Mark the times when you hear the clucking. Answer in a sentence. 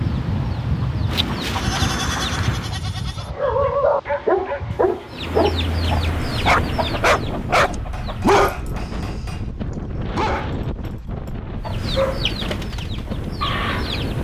You can hear the clucking from 0.0 to 2.8 s, from 5.0 to 8.4 s and from 11.6 to 14.1 s.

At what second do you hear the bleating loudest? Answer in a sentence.
The volume of the bleating peaks at 2 seconds.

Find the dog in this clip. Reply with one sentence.
The dog can be heard from 3.2 to 9.3 s and from 10.2 to 12.2 s.